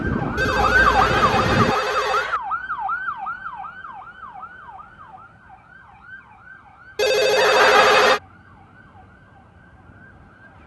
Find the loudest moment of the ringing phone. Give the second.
8 s.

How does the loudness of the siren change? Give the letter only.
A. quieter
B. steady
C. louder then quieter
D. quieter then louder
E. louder
A.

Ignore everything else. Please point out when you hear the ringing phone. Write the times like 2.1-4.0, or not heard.
0.3-2.4, 7.0-8.2.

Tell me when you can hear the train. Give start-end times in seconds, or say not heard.
0.0-1.8.